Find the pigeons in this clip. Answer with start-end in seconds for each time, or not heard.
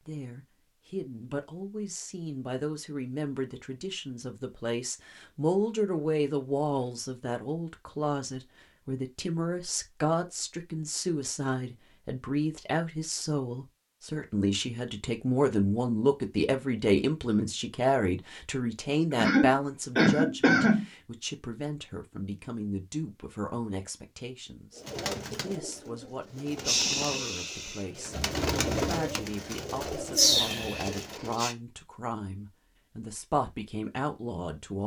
24.8-31.6.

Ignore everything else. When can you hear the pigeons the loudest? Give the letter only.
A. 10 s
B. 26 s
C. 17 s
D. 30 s
D.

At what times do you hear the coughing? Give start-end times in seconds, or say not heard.
19.1-20.9.